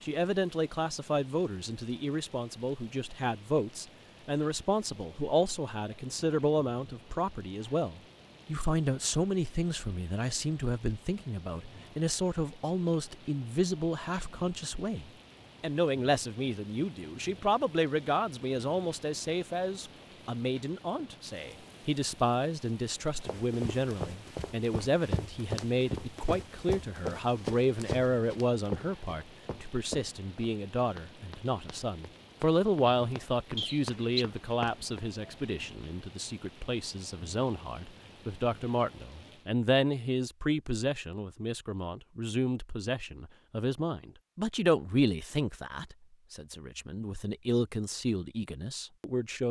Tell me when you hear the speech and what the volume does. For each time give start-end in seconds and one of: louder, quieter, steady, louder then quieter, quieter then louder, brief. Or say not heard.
0.0-49.4 steady.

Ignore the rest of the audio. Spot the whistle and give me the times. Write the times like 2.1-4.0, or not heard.
33.5-34.2.